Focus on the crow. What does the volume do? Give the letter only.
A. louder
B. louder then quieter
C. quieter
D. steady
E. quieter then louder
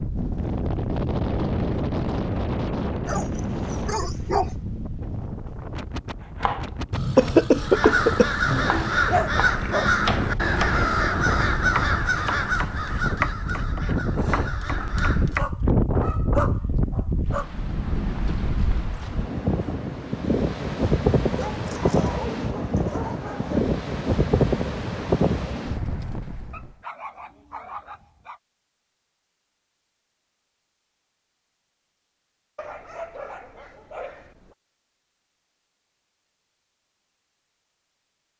C.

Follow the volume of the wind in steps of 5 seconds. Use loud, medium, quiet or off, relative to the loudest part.
loud, medium, medium, loud, loud, loud, off, off.